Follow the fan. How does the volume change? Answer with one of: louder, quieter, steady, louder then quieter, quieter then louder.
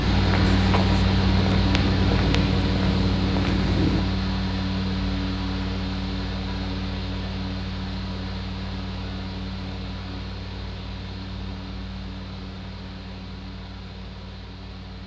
quieter.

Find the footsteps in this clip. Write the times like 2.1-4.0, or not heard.
0.0-4.0.